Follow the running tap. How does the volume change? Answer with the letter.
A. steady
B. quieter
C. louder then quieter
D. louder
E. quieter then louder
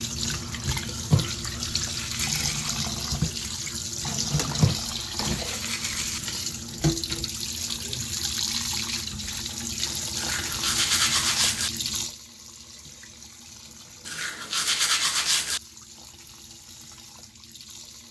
B.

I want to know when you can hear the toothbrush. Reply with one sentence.
You can hear the toothbrush from 1.1 to 2.7 s, from 4.6 to 6.2 s, from 10.2 to 11.7 s and from 14.1 to 15.6 s.